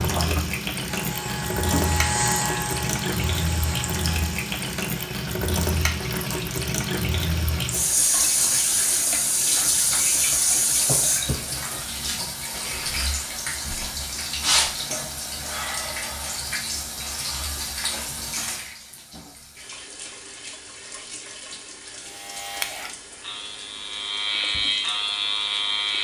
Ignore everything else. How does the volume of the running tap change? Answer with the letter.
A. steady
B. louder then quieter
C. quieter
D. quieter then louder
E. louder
C.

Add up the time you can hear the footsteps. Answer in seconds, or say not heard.
not heard.